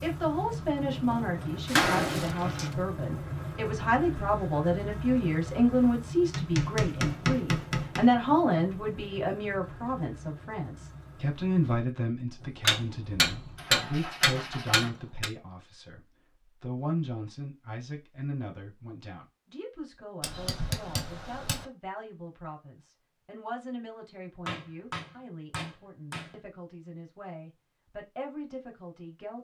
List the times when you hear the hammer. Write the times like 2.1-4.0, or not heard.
1.8-2.7, 6.3-8.1, 12.6-15.3, 20.2-21.6, 24.4-26.3.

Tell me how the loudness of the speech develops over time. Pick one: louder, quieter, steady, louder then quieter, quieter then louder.
quieter.